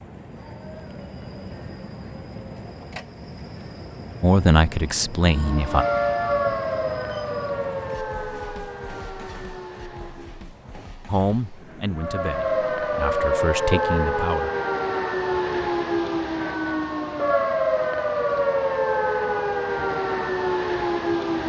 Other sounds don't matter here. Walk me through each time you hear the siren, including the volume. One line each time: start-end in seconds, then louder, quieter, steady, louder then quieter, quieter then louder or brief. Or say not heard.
5.2-10.6 quieter
11.9-21.4 steady.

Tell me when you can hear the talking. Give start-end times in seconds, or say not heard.
4.2-5.8, 11.1-14.5.